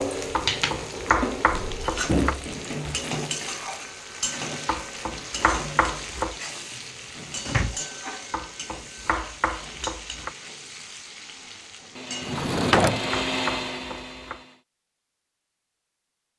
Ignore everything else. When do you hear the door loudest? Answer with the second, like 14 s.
13 s.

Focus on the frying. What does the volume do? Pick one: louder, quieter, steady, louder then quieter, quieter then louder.
quieter.